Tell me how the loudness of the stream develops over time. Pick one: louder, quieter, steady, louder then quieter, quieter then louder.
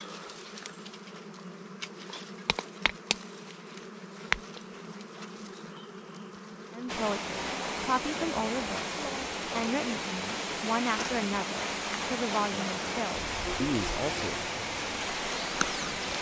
steady.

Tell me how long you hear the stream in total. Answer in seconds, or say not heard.
9 s.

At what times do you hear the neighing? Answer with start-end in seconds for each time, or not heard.
not heard.